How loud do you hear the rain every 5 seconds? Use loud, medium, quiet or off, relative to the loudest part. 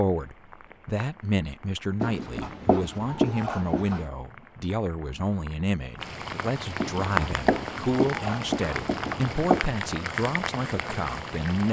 quiet, loud, loud.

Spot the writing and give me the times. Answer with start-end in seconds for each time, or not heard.
2.0-4.0, 6.8-9.7.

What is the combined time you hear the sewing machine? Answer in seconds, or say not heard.
not heard.